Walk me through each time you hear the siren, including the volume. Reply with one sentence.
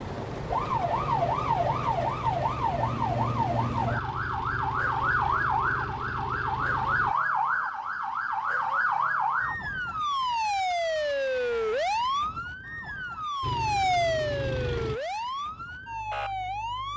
The siren can be heard from 0.0 to 16.9 s, at a steady volume.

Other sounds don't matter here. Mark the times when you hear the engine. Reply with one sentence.
The engine can be heard from 0.0 to 7.2 s and from 13.4 to 15.0 s.